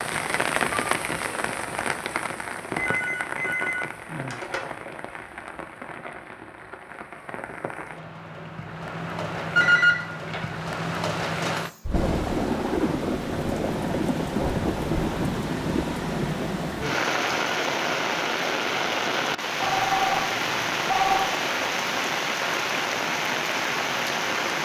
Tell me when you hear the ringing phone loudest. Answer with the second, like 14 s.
10 s.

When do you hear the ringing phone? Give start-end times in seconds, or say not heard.
2.8-4.6, 9.6-10.4, 19.6-21.3.